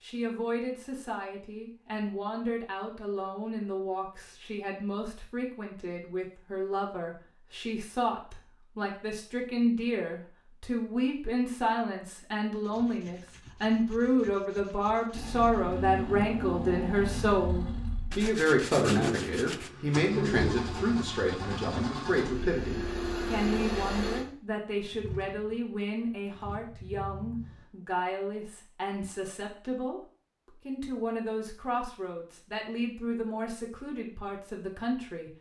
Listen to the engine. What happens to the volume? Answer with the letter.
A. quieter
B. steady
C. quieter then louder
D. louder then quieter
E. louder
A.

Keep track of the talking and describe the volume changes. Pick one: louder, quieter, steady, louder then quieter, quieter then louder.
louder then quieter.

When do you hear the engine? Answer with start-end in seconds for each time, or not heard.
15.1-27.6.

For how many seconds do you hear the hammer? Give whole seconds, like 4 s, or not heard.
not heard.